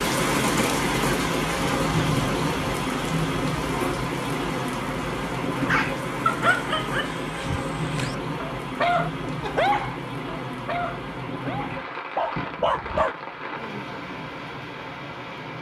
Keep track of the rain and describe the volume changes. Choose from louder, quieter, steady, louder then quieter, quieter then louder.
quieter.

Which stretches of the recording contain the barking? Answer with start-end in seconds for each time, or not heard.
5.5-13.2.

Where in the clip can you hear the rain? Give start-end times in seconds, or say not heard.
0.0-15.5.